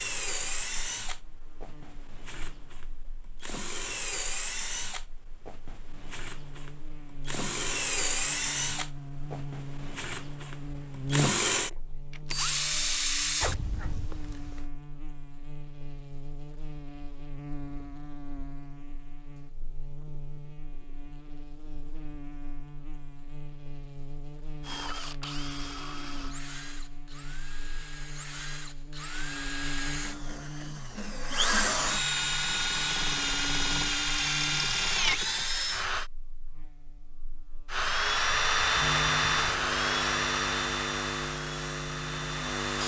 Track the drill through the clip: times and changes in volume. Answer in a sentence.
You can hear the drill from 0.0 to 14.7 s, getting louder; from 24.6 to 36.1 s, getting louder; and from 37.7 to 42.8 s, getting quieter.